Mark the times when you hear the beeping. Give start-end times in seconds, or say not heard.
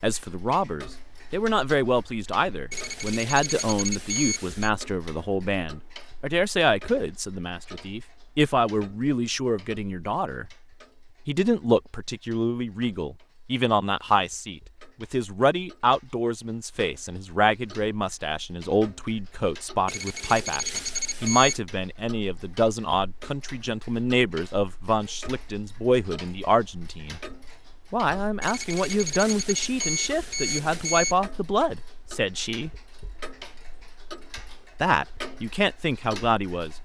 2.7-4.7, 19.9-21.6, 28.4-31.1.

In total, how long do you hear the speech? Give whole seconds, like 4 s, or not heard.
33 s.